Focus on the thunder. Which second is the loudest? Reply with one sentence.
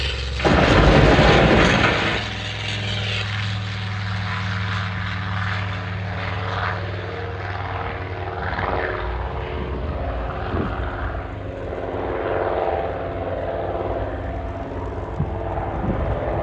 The volume of the thunder peaks at 1 second.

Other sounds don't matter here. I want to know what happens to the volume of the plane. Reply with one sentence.
The loudness of the plane stays about the same.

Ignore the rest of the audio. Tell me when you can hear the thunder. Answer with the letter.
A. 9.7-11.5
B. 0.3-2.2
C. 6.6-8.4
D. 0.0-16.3
B.